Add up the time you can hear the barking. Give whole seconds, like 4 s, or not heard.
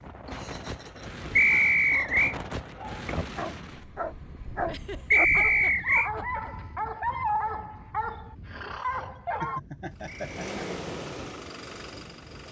8 s.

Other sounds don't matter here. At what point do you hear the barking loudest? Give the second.
7 s.